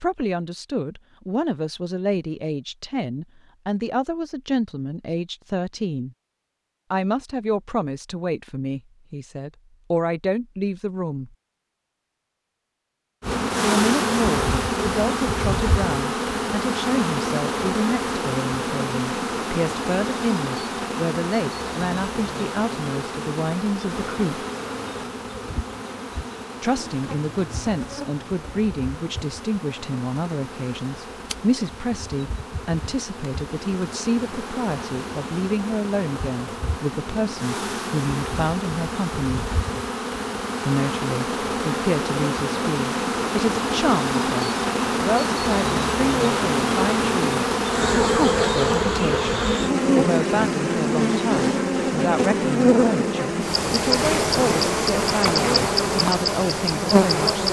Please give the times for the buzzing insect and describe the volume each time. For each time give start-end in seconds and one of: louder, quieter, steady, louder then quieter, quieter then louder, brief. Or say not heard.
13.2-57.4 quieter then louder.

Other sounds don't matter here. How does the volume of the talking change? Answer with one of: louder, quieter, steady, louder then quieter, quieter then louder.
steady.